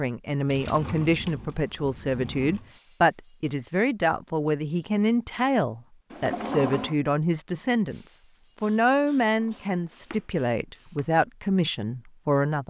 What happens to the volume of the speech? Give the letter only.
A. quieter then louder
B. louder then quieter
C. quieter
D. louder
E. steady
E.